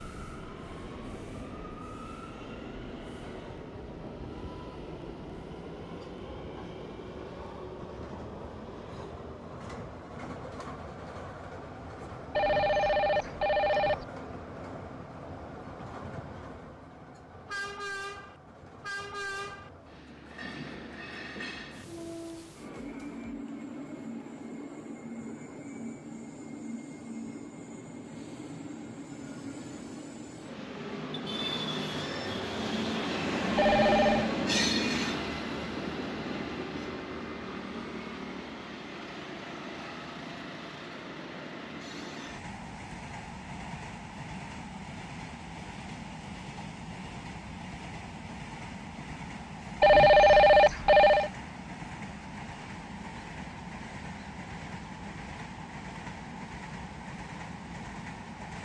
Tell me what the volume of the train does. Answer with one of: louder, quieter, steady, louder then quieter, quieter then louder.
louder then quieter.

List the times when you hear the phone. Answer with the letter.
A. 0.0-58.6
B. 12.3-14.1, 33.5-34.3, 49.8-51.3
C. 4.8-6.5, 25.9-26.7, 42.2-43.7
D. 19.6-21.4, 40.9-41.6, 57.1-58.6
B.